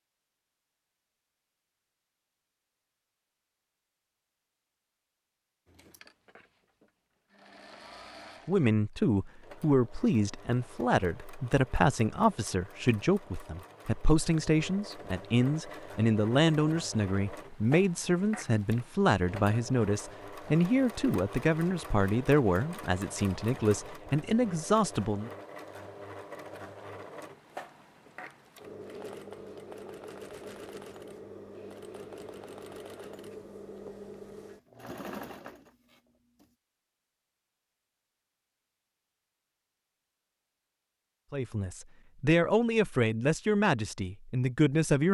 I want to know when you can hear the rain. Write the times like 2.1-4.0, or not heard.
not heard.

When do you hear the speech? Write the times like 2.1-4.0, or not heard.
8.4-25.3, 41.3-45.0.